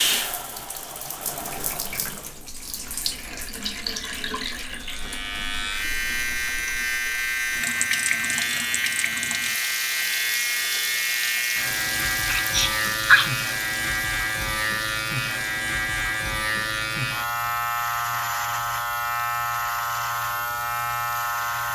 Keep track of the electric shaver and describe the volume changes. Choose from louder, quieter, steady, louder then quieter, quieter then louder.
steady.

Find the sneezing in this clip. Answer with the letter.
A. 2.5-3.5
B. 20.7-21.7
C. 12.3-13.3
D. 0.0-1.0
C.